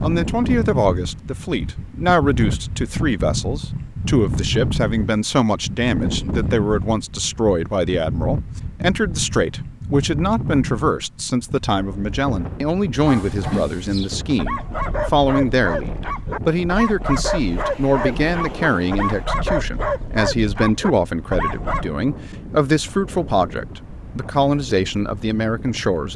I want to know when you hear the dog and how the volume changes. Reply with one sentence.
You can hear the dog from 13.0 to 21.9 s, at a steady volume.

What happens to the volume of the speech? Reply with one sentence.
The loudness of the speech stays about the same.